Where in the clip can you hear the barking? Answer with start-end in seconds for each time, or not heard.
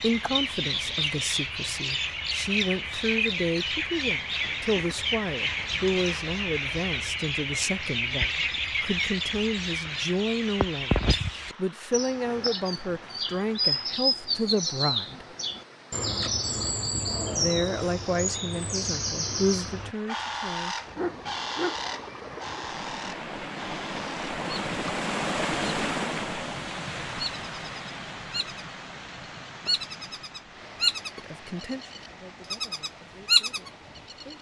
20.1-21.8.